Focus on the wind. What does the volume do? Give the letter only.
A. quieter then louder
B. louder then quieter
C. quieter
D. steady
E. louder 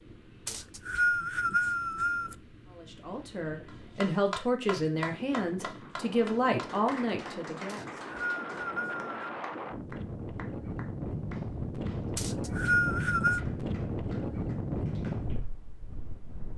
E.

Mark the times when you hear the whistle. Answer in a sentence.
The whistle can be heard from 0.5 to 2.4 s, from 7.7 to 9.3 s and from 12.2 to 13.4 s.